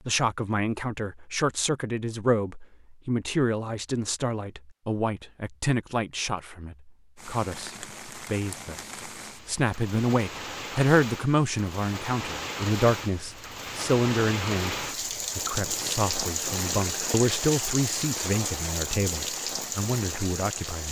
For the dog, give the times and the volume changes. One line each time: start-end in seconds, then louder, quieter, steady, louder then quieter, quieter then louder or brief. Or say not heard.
not heard.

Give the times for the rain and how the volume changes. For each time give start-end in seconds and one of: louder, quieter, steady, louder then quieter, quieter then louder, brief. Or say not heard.
7.2-20.8 louder.